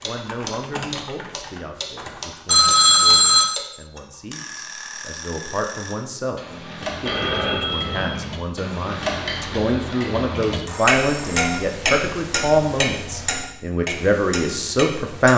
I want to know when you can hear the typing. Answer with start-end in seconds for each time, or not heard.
0.0-2.5.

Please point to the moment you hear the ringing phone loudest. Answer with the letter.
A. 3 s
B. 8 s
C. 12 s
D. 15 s
A.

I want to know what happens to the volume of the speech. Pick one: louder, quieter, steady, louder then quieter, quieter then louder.
louder.